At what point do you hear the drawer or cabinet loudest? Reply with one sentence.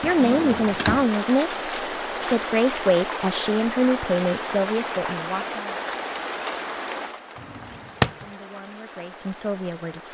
The volume of the drawer or cabinet peaks at 8 seconds.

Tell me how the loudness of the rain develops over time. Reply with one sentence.
The loudness of the rain goes down.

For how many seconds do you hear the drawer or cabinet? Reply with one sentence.
The drawer or cabinet can be heard for 2 seconds in total.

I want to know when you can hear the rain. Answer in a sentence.
You can hear the rain from 0.0 to 10.0 s.